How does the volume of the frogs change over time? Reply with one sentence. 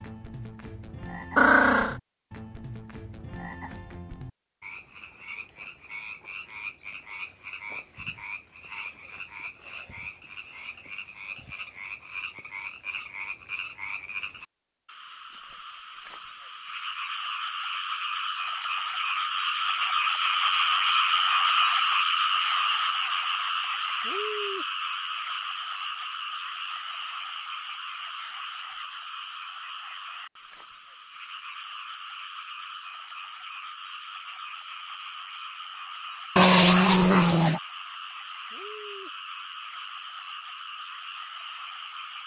The loudness of the frogs goes up, then down.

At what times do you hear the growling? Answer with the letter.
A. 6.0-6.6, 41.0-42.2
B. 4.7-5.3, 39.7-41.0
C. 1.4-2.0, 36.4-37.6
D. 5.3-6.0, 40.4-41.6
C.